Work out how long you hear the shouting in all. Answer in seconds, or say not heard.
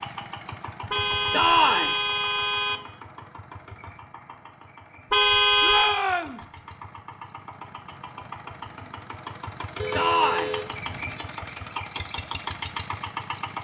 2 s.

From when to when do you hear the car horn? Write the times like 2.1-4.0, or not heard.
0.9-2.8, 5.1-6.0, 9.8-11.2.